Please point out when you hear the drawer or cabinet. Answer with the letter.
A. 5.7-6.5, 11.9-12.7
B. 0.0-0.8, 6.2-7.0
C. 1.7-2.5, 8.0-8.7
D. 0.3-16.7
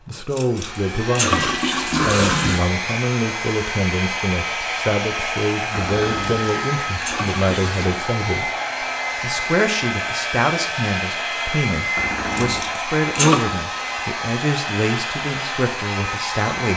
A.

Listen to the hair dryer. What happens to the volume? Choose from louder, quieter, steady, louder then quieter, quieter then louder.
steady.